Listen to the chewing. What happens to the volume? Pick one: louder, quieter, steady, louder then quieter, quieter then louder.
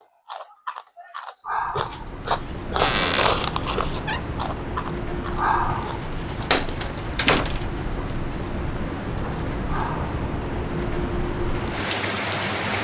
louder then quieter.